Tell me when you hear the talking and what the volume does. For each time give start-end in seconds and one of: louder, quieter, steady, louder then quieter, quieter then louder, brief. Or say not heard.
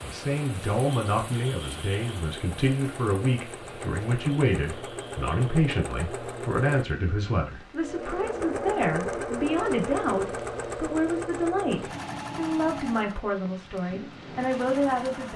0.0-15.3 steady.